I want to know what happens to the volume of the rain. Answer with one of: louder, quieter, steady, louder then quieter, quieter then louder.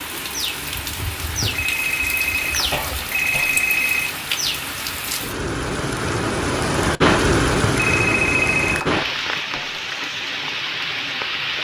louder then quieter.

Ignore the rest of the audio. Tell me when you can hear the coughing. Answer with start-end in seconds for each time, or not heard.
2.7-3.6, 8.9-9.8.